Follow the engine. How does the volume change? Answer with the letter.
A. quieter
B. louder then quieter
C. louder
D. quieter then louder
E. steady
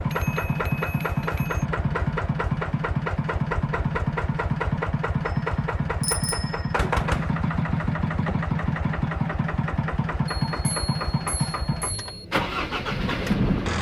E.